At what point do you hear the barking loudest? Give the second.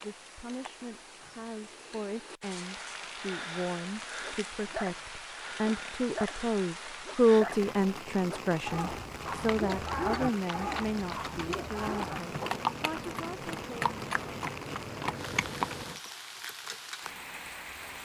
10 s.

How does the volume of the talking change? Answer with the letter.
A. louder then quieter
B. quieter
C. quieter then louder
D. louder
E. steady
A.